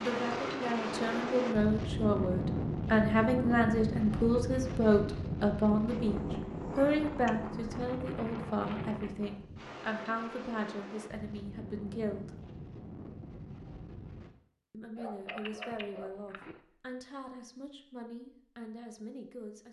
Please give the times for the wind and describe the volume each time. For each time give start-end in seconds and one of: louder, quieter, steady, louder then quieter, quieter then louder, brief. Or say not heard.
0.0-14.3 quieter.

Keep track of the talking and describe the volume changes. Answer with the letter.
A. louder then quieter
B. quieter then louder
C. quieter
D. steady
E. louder
C.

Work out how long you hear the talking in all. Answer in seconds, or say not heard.
17 s.